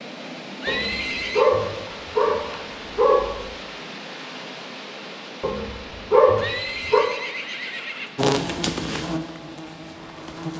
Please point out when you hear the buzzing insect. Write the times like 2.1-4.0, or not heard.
8.2-10.5.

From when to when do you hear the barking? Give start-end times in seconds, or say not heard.
0.7-3.4, 5.4-7.0.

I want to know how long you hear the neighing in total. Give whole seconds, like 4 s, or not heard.
3 s.